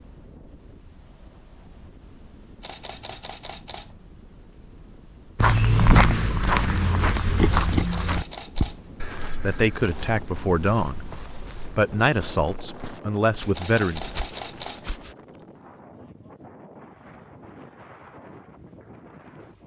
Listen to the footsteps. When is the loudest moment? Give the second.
6 s.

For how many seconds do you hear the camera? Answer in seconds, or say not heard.
4 s.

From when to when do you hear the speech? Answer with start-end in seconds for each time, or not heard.
9.4-11.0, 11.8-14.0.